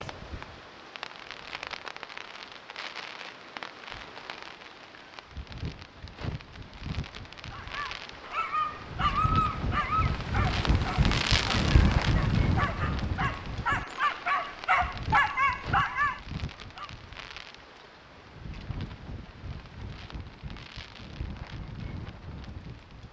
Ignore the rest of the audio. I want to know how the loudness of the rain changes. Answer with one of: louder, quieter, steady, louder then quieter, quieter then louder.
louder then quieter.